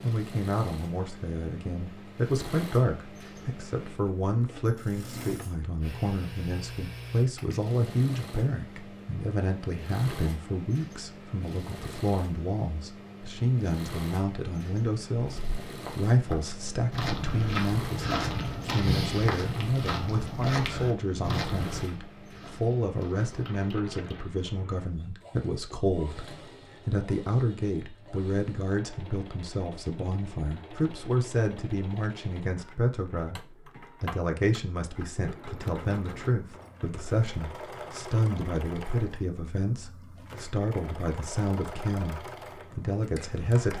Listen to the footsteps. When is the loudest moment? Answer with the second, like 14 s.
19 s.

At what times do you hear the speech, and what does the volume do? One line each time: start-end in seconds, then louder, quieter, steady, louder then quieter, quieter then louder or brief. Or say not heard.
0.0-43.7 steady.